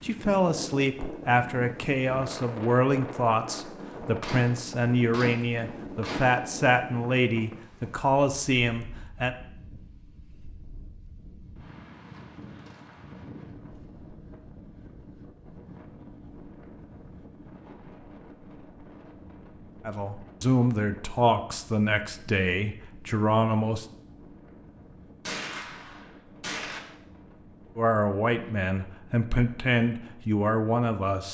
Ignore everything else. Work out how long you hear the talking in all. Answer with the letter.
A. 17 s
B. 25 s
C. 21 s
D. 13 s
A.